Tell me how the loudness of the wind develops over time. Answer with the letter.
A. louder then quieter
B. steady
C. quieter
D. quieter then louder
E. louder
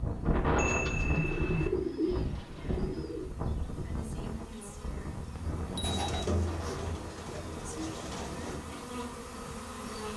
C.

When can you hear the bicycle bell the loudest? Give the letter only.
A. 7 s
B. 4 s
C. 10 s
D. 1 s
D.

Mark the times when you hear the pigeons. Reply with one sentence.
The pigeons can be heard from 0.8 to 3.3 s and from 5.8 to 8.6 s.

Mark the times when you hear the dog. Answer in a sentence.
You can't hear the dog here.